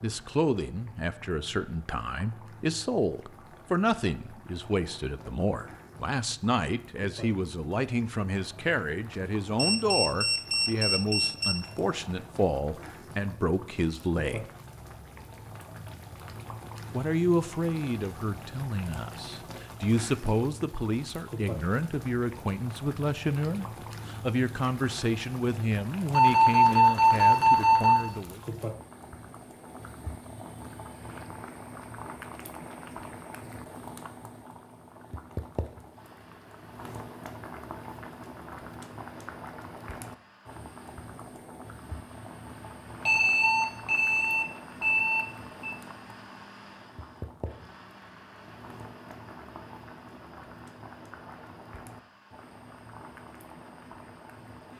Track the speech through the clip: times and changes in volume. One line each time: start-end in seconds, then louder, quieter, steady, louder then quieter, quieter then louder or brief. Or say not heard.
0.0-14.4 steady
16.9-28.4 steady.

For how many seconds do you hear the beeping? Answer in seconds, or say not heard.
7 s.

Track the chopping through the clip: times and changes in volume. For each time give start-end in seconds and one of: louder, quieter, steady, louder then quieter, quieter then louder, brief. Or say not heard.
not heard.